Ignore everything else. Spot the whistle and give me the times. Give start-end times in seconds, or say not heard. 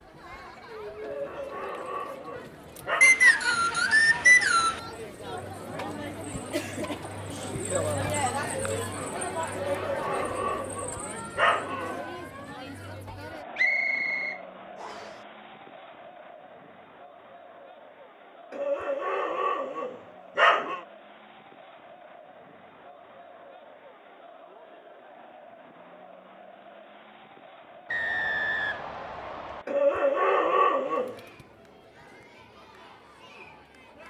3.0-4.8, 13.6-15.1, 27.9-29.6.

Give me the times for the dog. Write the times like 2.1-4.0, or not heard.
1.0-3.0, 9.5-12.0, 18.5-20.8, 29.6-31.2.